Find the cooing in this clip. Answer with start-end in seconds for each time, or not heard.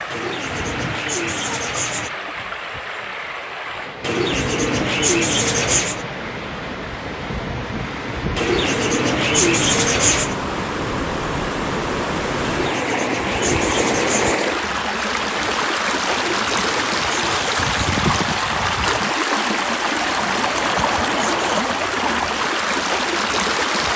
0.1-2.1, 4.0-6.0, 8.3-10.3, 12.4-14.4, 16.1-17.8, 20.2-21.8.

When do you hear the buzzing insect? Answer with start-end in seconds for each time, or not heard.
not heard.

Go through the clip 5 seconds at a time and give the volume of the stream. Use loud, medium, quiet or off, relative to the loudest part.
medium, medium, loud, loud, loud.